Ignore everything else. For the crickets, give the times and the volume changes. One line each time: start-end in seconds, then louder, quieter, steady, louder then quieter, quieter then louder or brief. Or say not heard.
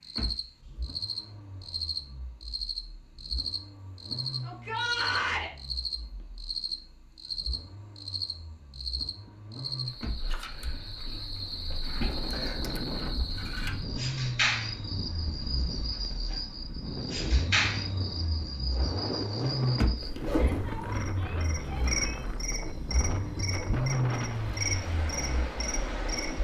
0.0-26.3 steady.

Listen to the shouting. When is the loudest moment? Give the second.
5 s.